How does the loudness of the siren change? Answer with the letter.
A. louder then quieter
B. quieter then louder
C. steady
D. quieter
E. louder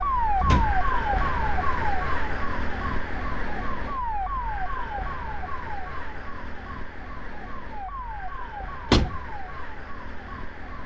D.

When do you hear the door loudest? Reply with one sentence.
The volume of the door peaks at 9 seconds.